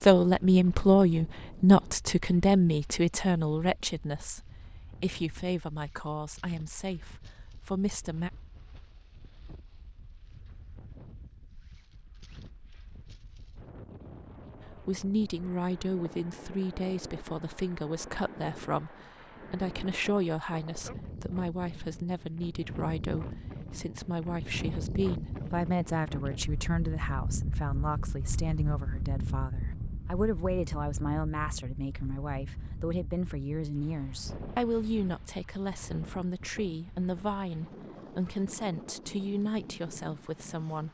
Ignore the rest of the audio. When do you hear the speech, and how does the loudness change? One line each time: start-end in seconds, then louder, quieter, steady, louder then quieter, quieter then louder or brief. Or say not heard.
0.0-8.3 quieter
14.6-40.8 steady.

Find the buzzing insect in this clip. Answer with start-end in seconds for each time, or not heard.
not heard.